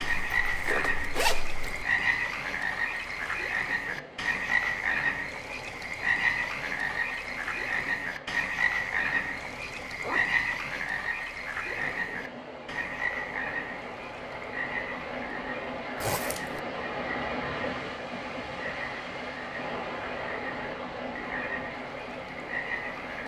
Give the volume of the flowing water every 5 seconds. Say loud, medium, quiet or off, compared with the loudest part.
medium, medium, medium, loud, loud.